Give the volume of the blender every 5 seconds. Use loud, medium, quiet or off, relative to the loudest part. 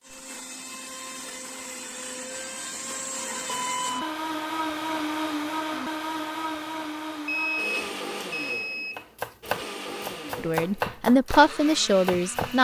loud, loud, medium.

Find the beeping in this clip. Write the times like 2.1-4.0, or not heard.
3.5-4.2, 7.2-9.1.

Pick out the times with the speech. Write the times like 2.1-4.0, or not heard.
10.3-12.5.